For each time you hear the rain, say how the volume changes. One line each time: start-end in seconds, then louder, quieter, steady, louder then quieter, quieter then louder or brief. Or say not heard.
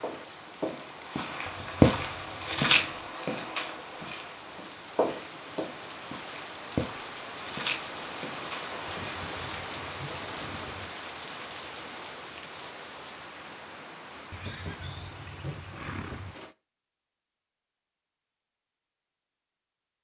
0.0-16.6 louder then quieter.